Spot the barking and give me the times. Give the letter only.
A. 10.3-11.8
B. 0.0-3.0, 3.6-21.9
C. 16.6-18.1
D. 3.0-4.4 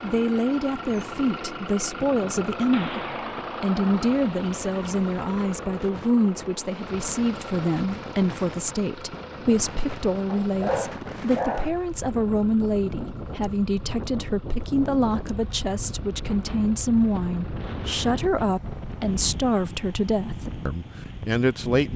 A.